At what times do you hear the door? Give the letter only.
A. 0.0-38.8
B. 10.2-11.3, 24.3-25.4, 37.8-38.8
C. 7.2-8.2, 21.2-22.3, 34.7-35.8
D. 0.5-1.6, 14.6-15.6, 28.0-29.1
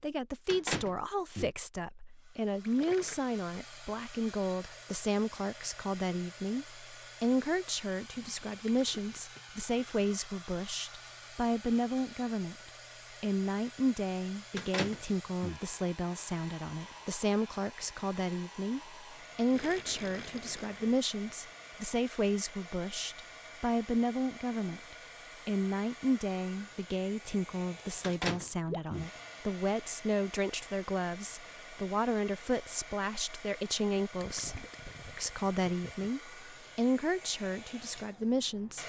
D.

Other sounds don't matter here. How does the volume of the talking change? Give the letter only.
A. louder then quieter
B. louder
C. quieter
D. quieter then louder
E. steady
E.